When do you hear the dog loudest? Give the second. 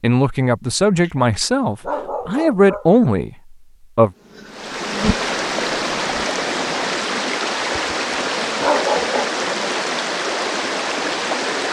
9 s.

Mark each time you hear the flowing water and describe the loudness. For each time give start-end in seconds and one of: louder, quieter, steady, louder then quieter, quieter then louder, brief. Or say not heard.
4.5-11.6 steady.